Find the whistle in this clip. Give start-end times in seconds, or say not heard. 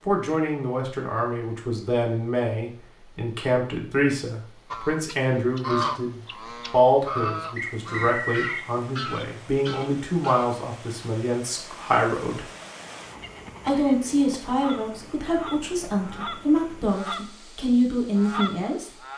7.5-8.7.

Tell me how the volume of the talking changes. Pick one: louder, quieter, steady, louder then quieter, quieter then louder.
steady.